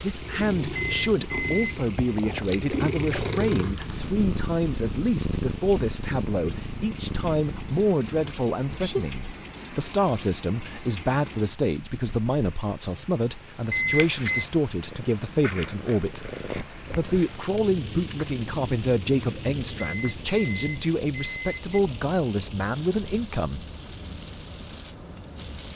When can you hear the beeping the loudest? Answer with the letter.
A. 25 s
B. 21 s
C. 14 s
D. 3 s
C.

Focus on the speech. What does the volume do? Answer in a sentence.
The loudness of the speech stays about the same.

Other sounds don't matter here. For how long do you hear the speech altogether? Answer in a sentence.
The speech can be heard for 23 seconds in total.